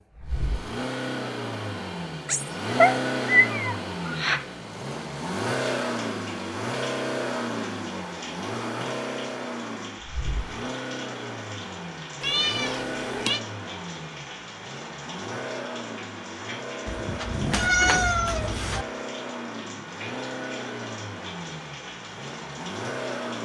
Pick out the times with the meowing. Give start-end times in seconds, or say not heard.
2.2-4.5, 12.2-13.4, 16.9-18.9.